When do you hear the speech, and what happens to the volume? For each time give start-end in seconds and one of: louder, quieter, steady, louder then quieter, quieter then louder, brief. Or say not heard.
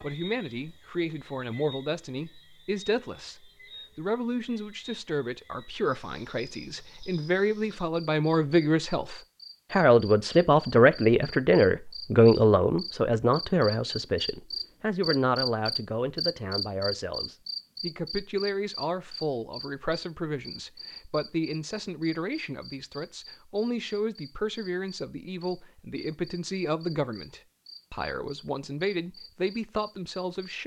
0.0-30.6 louder then quieter.